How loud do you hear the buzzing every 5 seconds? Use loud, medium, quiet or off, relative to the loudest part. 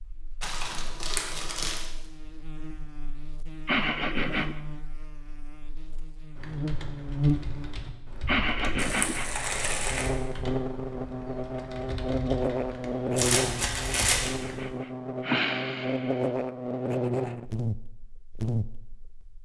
quiet, loud, loud, loud.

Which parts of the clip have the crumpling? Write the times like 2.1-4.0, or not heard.
0.4-1.9, 8.8-10.1, 13.2-14.3.